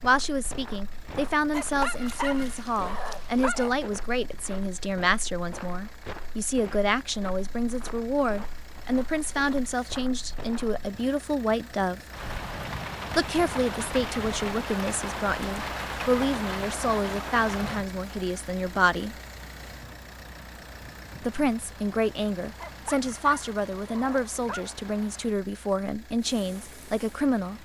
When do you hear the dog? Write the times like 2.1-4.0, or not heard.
1.5-3.8, 22.6-24.8.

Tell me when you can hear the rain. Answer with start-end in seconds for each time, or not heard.
12.1-27.6.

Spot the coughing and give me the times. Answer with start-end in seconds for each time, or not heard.
not heard.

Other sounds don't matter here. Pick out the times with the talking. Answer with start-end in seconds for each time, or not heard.
0.0-12.0, 13.2-19.1, 21.2-27.6.